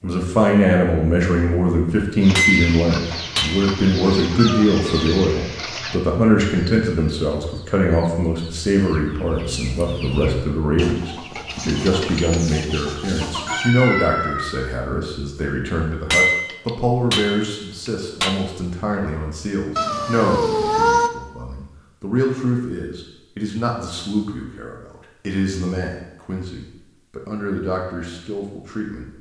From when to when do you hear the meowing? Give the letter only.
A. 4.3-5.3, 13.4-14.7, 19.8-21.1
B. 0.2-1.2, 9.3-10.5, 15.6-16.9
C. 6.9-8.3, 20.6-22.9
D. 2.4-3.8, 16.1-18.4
A.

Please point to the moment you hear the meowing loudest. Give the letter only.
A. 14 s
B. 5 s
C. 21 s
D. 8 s
C.